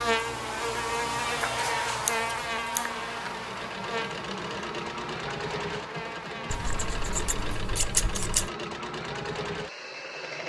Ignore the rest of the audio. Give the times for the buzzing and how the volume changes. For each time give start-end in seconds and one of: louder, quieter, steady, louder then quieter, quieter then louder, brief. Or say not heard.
0.0-7.3 quieter.